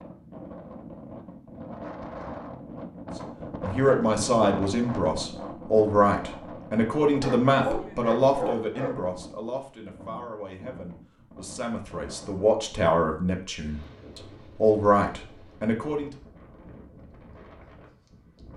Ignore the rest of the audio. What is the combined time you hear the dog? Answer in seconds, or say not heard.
2 s.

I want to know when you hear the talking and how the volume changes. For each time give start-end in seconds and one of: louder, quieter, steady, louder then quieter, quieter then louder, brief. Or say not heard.
3.6-16.1 quieter then louder.